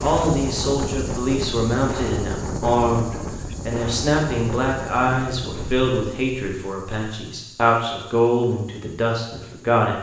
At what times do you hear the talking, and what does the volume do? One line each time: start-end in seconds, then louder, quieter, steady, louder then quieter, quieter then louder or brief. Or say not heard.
0.0-9.9 steady.